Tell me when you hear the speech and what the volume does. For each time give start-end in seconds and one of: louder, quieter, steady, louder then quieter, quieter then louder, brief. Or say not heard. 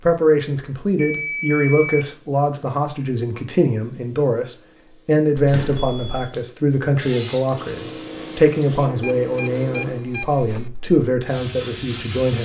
0.0-12.4 steady.